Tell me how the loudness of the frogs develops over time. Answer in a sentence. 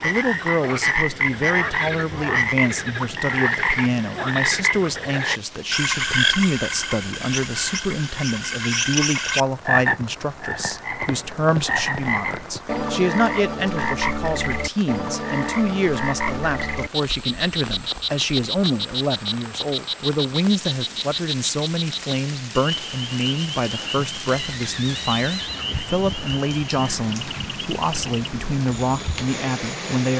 The loudness of the frogs goes down.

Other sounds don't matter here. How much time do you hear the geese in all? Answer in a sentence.
You can't hear the geese here.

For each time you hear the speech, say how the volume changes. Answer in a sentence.
You can hear the speech from 0.0 to 30.1 s, at a steady volume.